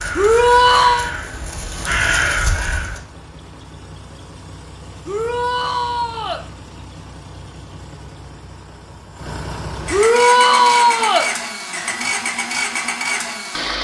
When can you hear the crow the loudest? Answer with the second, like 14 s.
2 s.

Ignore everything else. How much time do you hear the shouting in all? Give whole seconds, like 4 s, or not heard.
4 s.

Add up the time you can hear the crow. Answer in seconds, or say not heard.
3 s.